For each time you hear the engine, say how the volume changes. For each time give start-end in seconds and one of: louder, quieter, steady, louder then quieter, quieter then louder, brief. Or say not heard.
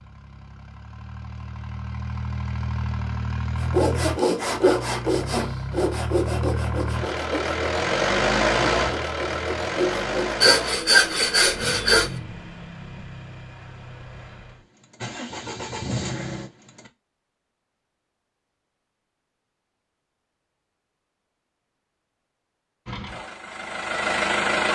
0.0-16.9 louder then quieter
22.9-24.7 brief.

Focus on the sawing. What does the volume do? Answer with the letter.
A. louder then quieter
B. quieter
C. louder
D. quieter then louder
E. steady
D.